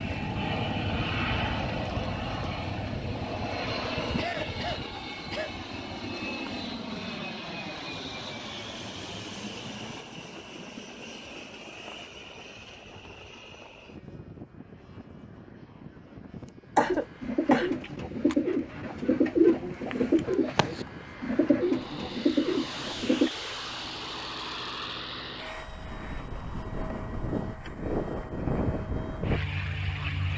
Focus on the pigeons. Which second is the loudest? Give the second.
19 s.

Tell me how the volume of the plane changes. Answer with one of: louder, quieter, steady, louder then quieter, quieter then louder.
quieter then louder.